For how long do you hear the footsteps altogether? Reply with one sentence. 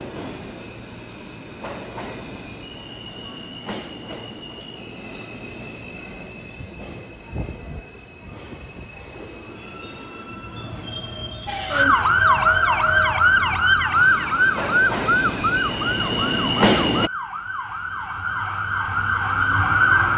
You can't hear the footsteps here.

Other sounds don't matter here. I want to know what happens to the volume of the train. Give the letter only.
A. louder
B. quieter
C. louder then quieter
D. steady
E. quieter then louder
A.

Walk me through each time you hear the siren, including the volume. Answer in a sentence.
The siren can be heard from 11.4 to 20.1 s, getting quieter then louder.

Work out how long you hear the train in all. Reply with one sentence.
The train can be heard for 17 seconds in total.